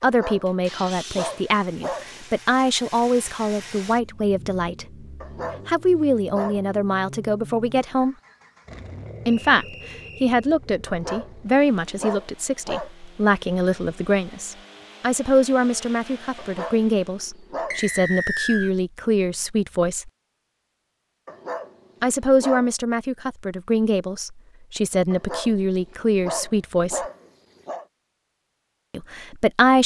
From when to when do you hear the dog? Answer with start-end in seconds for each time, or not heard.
0.0-2.2, 5.2-6.7, 10.8-12.9, 16.4-17.8, 21.2-22.7, 25.1-27.9.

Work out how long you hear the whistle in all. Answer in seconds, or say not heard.
2 s.